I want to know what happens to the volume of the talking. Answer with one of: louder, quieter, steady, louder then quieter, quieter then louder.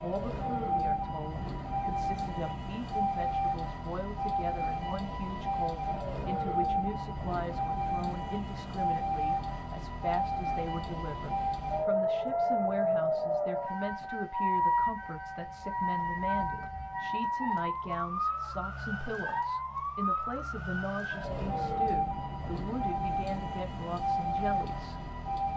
steady.